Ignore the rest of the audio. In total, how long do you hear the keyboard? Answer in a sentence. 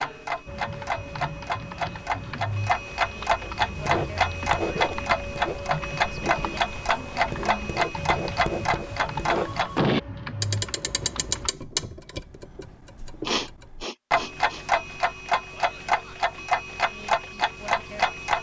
The keyboard can be heard for 11 seconds in total.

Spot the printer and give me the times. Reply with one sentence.
You can't hear the printer here.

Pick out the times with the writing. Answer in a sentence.
The writing can be heard from 3.4 to 9.6 s.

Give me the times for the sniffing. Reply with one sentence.
You can hear the sniffing from 13.2 to 14.7 s.